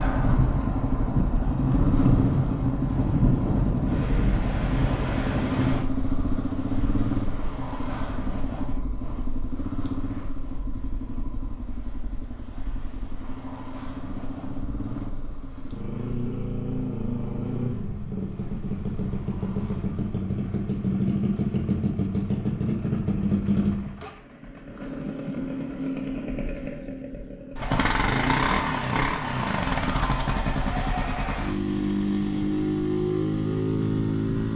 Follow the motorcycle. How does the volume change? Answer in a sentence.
The volume of the motorcycle goes down, then up.